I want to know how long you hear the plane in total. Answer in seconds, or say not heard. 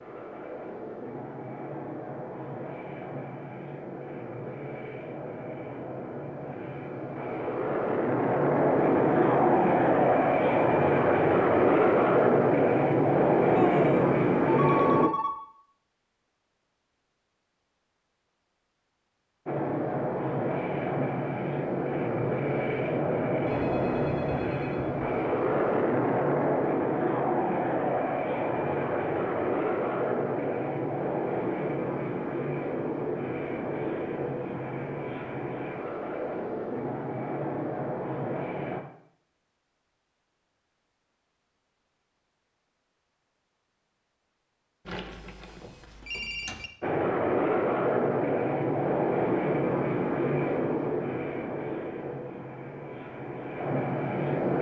42 s.